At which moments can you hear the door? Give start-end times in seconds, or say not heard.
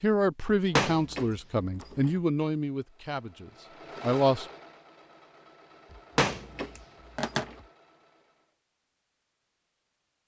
0.8-2.1, 5.9-7.6.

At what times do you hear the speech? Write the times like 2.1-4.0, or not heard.
0.0-4.5.